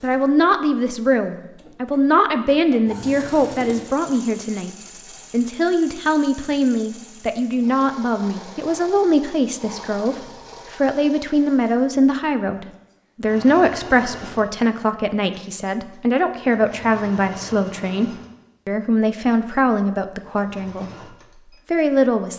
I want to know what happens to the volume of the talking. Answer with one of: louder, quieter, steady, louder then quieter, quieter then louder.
steady.